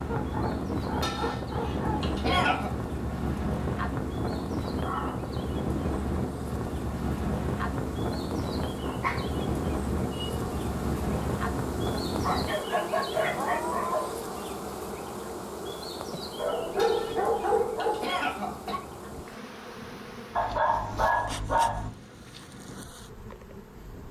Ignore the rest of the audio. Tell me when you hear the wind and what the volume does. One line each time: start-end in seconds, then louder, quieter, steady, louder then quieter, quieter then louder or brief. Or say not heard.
0.0-24.0 quieter.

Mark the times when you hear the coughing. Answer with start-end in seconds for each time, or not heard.
1.0-2.7, 16.8-18.8.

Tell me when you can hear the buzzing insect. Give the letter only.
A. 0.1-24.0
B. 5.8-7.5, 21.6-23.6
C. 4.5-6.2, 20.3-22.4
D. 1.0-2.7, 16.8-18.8
A.